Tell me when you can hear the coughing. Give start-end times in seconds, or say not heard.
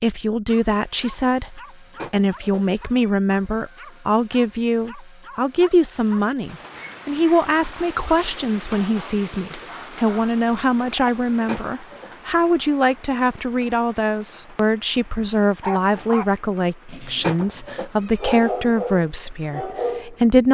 not heard.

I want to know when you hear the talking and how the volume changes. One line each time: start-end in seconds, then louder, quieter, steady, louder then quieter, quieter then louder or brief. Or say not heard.
0.0-20.4 steady.